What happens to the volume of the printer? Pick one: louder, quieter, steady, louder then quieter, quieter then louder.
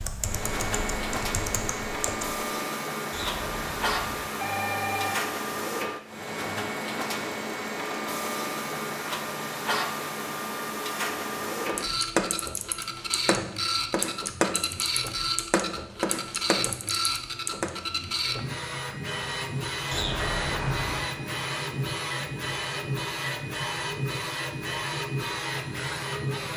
steady.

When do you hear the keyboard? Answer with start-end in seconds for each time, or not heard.
0.0-2.4, 11.7-17.8.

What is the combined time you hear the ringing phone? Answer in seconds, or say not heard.
3 s.